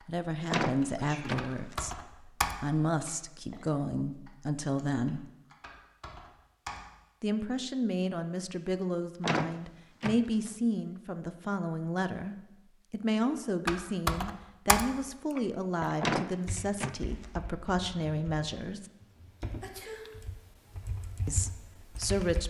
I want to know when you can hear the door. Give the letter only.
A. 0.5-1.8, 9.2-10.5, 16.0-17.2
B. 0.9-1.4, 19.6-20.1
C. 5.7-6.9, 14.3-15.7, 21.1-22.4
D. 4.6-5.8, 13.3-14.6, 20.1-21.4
A.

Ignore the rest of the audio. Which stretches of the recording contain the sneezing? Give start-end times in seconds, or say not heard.
0.9-1.4, 19.6-20.1.